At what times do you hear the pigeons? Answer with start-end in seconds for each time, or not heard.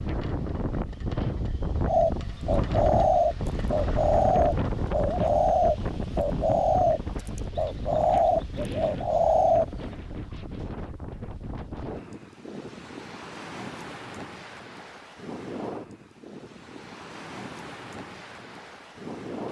1.9-9.8.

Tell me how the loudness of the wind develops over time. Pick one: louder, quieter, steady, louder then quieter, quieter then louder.
quieter.